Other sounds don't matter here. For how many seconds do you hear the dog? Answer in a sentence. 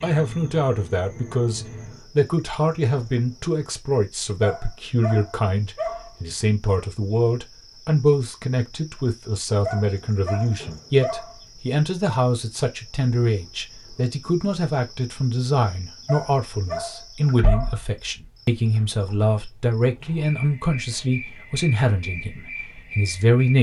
The dog can be heard for 5 seconds in total.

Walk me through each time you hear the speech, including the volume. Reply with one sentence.
You can hear the speech from 0.0 to 23.5 s, at a steady volume.